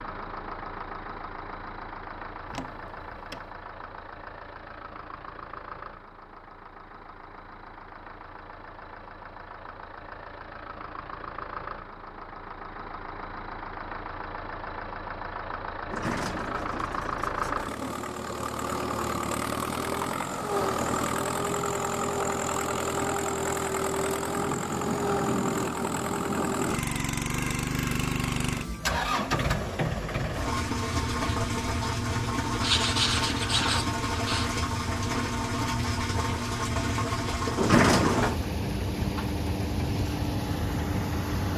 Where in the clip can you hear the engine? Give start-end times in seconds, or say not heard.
0.0-41.5.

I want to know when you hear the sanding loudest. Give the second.
33 s.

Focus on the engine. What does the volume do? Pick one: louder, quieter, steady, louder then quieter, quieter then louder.
louder.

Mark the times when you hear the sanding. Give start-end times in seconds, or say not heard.
32.6-34.5.